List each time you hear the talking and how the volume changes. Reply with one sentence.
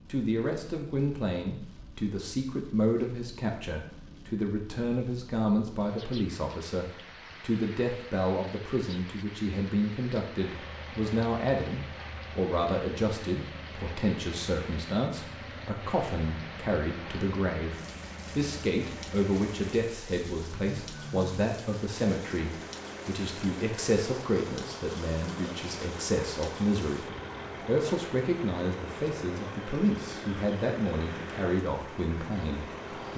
The talking can be heard from 0.1 to 33.1 s, at a steady volume.